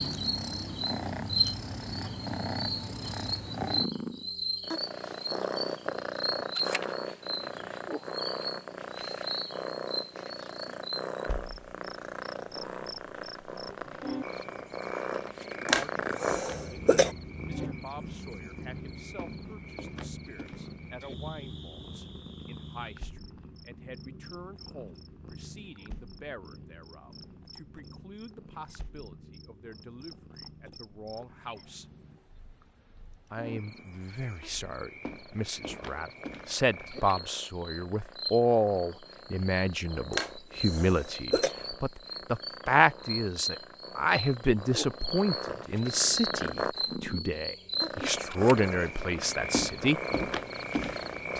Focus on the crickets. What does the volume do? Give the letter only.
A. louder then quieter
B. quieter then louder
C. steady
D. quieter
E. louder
B.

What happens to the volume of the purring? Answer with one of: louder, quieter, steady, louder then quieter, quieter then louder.
quieter then louder.